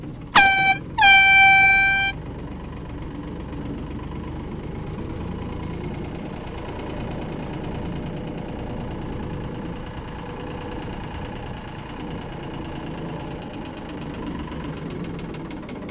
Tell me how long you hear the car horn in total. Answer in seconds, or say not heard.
2 s.